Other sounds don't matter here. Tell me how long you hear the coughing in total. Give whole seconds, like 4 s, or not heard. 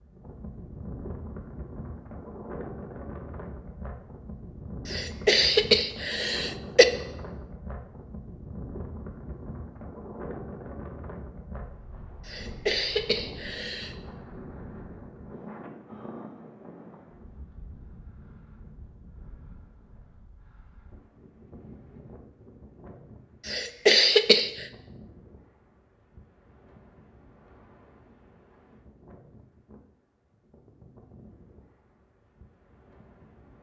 5 s.